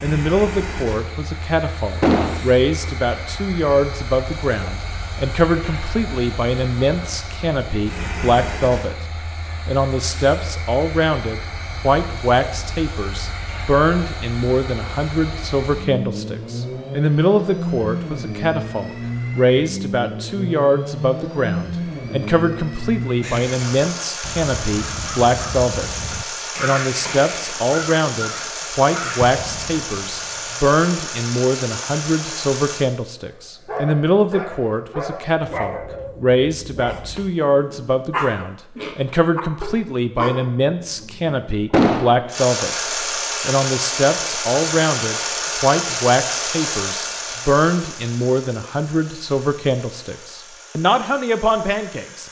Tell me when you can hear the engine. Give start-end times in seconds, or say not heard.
0.0-32.9, 42.2-52.2.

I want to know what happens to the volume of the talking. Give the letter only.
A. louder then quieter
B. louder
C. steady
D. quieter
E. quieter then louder
C.